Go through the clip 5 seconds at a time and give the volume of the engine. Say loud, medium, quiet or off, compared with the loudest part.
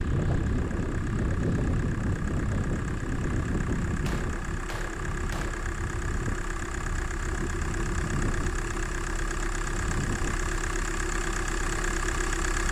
medium, loud, loud.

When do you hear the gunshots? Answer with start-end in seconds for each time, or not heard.
3.9-5.7.